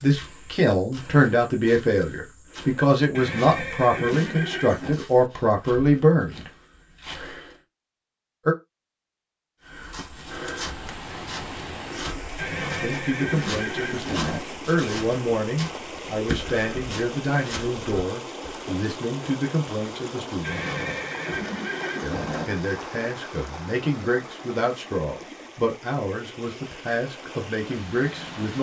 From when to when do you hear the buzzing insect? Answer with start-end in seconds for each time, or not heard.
not heard.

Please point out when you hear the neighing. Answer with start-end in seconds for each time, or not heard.
3.1-5.0, 12.3-14.4, 20.4-22.4.